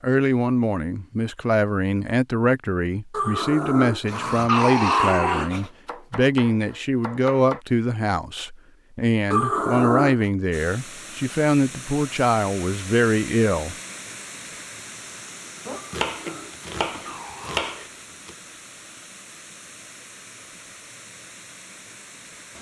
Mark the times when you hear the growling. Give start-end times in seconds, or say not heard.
3.1-5.7, 9.3-10.2, 15.7-17.7.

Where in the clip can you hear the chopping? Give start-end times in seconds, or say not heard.
5.7-7.6, 15.7-18.4.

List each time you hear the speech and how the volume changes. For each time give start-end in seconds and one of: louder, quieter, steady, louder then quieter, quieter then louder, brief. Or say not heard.
0.0-13.8 steady.